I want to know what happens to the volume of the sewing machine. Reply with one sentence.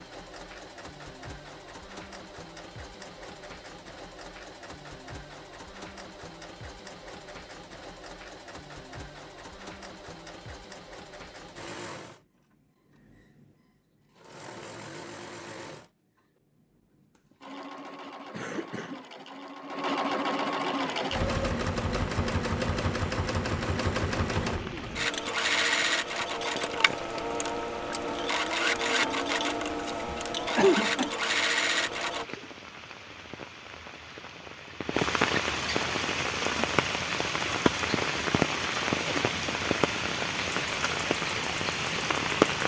The loudness of the sewing machine goes up.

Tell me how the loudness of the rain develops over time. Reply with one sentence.
The loudness of the rain goes up.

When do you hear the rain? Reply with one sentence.
You can hear the rain from 20.8 to 42.6 s.